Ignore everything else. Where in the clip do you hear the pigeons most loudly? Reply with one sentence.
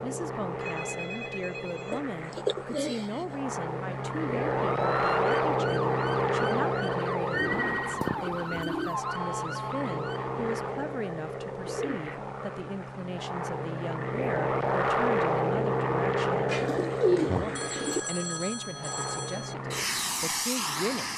The loudest moment of the pigeons is at 17 seconds.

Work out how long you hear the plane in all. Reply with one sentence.
The plane can be heard for 21 seconds in total.